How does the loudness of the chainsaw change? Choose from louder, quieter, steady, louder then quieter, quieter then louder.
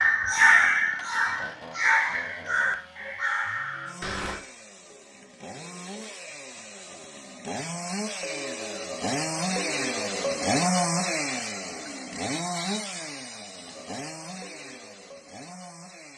louder then quieter.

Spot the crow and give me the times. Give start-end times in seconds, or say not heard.
0.0-4.4.